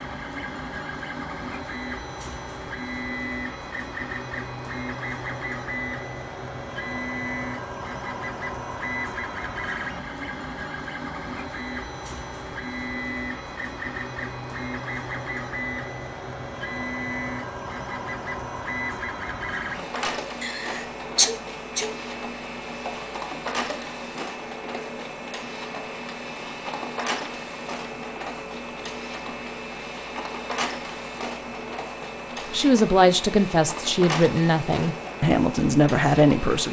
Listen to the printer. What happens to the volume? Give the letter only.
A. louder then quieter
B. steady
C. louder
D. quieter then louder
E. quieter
B.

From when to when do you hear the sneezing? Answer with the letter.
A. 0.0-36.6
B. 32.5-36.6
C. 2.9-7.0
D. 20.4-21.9
D.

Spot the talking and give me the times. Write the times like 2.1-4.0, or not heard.
32.5-36.6.